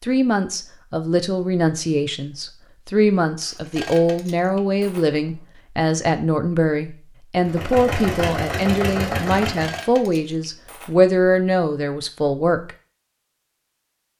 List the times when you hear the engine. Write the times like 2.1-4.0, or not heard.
7.4-9.8.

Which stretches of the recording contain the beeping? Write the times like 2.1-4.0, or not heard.
not heard.